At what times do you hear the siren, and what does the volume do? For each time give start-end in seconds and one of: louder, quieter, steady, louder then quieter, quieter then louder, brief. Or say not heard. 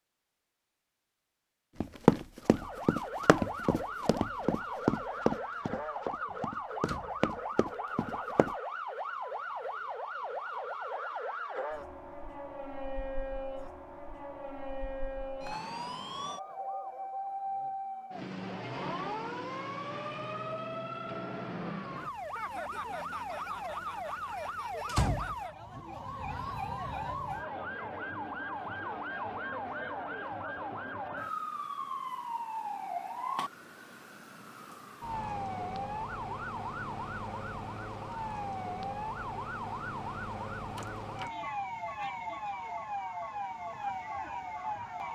2.4-45.0 steady.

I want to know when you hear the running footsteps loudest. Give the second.
2 s.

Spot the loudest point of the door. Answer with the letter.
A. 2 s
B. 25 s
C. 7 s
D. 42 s
B.